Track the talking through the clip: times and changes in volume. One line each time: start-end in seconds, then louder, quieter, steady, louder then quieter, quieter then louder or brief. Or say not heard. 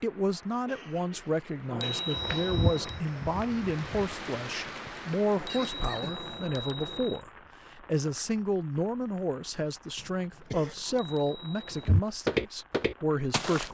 0.0-13.6 steady.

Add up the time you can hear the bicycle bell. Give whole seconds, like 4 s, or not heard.
4 s.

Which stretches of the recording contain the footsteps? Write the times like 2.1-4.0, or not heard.
2.1-4.2, 11.8-13.6.